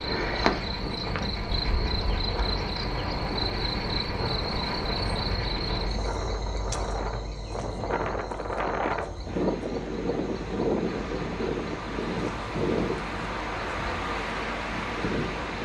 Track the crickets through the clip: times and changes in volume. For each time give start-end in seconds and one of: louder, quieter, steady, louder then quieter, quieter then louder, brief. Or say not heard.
0.0-15.6 quieter.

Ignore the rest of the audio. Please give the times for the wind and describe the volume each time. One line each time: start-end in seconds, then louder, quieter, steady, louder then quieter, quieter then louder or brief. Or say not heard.
0.0-15.6 louder.